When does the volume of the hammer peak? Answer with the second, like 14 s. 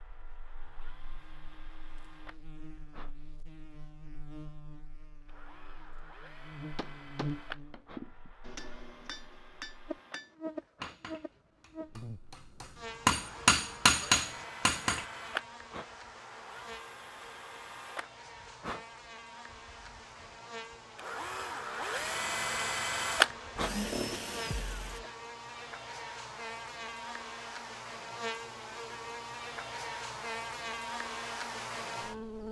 14 s.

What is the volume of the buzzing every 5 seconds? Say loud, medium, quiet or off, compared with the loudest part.
quiet, medium, medium, medium, medium, loud, loud.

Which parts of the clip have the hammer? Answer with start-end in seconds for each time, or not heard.
6.8-15.1.